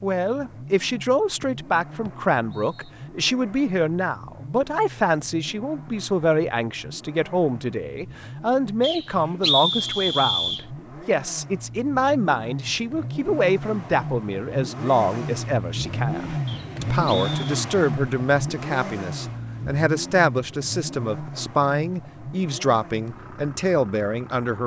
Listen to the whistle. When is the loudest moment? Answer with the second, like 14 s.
10 s.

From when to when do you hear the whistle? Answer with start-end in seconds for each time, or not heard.
2.0-2.9, 8.8-10.7, 16.4-17.4.